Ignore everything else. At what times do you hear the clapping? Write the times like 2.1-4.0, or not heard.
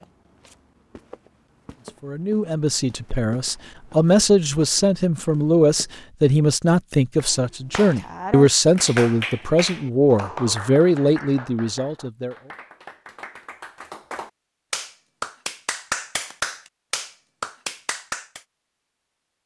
7.2-18.4.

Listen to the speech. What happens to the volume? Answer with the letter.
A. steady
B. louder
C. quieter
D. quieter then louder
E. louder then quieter
A.